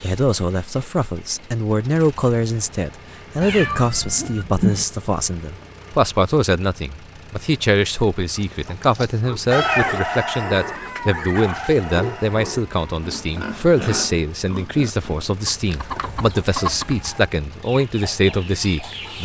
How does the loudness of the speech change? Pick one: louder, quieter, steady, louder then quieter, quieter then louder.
steady.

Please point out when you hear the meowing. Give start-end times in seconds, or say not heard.
3.4-4.8, 9.5-11.1, 15.7-17.3.